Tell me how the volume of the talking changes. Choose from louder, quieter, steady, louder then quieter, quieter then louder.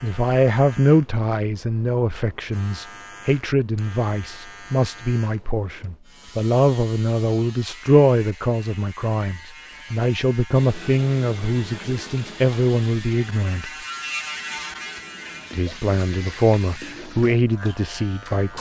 steady.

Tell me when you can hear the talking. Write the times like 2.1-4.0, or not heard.
0.0-13.7, 15.5-18.5.